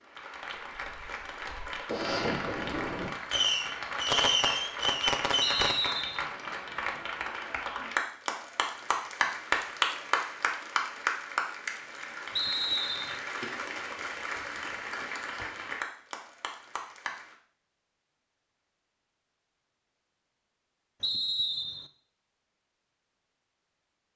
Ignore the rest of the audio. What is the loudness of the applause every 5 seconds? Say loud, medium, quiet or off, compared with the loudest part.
medium, loud, loud, medium, off.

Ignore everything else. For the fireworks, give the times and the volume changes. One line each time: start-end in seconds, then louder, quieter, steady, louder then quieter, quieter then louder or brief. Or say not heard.
0.5-5.9 louder.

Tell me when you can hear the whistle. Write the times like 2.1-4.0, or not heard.
5.4-6.2, 12.3-13.2, 21.0-21.9.